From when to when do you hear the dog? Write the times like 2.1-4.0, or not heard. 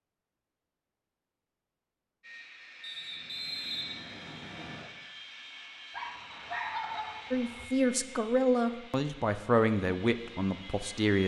5.9-7.7.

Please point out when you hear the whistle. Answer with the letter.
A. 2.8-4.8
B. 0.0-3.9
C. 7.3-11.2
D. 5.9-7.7
A.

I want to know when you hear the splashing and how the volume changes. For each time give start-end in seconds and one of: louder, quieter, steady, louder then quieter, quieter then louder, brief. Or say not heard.
not heard.